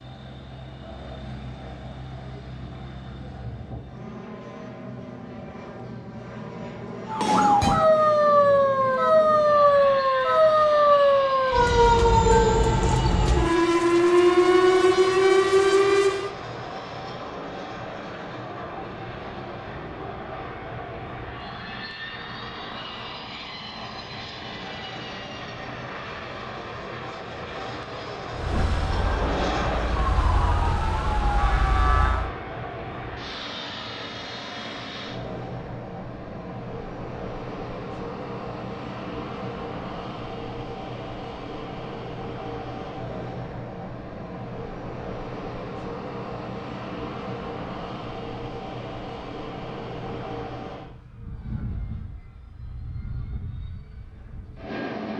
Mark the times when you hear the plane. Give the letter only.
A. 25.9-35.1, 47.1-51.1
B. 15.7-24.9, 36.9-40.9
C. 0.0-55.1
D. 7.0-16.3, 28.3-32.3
C.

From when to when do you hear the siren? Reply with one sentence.
The siren can be heard from 7.0 to 16.3 s and from 28.3 to 32.3 s.